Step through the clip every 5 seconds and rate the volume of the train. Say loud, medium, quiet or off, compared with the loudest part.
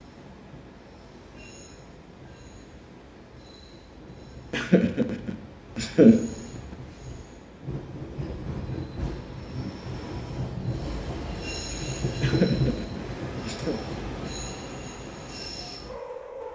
quiet, medium, loud, medium.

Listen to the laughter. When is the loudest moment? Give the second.
6 s.